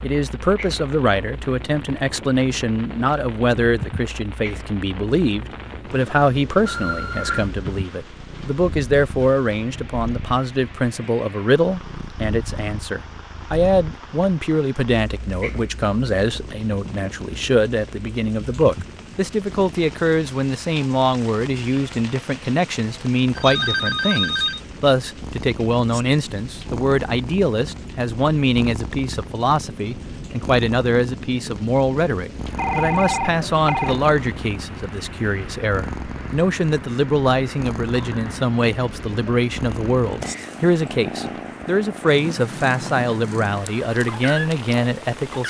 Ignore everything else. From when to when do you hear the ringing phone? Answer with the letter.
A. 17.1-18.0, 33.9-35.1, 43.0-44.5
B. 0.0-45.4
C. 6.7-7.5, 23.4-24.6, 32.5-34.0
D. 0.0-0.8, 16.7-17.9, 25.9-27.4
C.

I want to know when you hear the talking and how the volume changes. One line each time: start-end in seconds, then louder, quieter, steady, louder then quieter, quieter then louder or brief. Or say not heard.
0.0-45.4 steady.